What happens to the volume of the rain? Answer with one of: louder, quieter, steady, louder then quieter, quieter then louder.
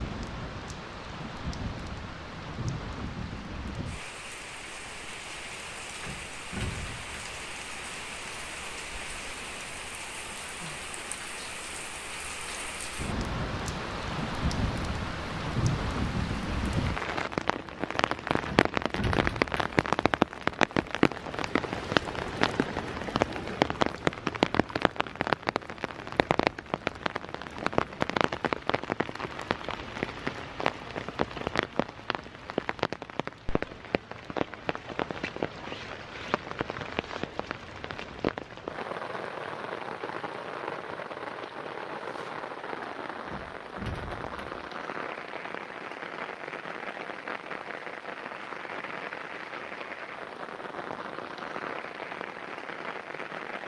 louder then quieter.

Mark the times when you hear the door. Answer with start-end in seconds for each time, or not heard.
6.0-7.4, 18.4-19.8, 43.2-44.5.